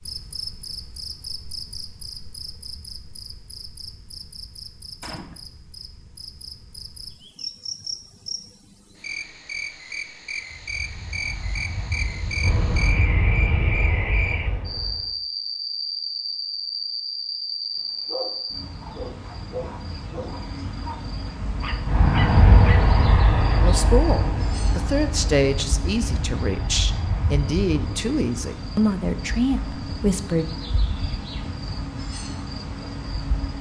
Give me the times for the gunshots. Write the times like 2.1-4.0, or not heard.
5.0-5.4.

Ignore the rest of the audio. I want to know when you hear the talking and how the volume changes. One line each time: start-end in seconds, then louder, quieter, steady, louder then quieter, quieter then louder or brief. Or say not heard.
23.6-30.5 steady.